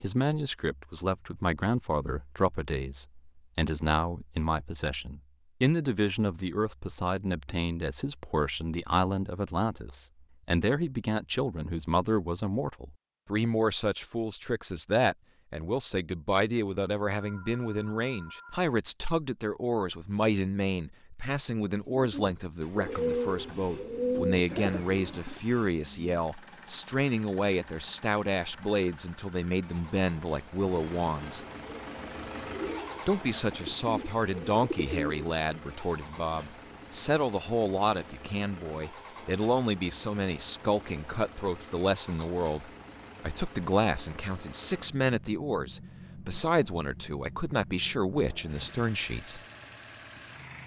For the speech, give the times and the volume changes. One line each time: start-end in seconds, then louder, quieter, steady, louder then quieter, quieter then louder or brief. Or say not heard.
0.0-31.4 steady
33.0-49.4 steady.